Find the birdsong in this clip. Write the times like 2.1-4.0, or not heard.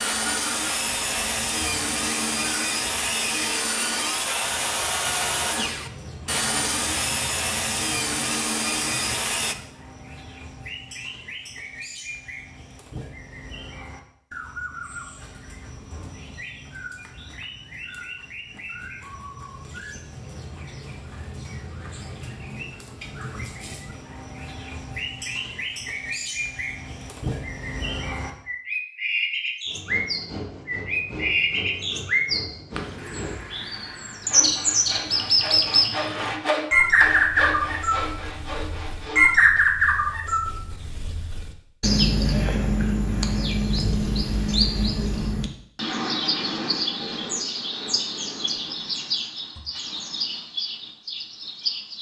0.0-51.9.